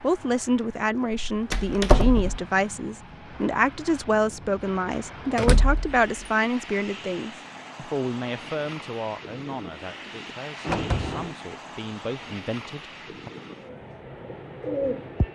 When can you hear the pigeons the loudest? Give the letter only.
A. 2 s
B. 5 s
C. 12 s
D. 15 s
D.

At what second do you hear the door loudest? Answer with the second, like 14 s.
2 s.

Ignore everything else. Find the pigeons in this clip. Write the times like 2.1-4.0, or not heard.
13.6-15.2.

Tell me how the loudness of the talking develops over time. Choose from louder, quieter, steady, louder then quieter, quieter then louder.
quieter.